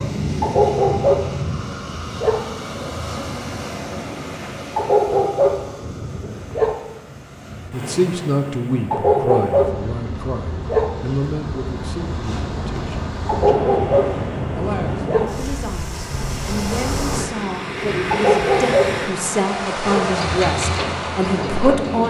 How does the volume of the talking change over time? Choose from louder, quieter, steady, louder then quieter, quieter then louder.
quieter then louder.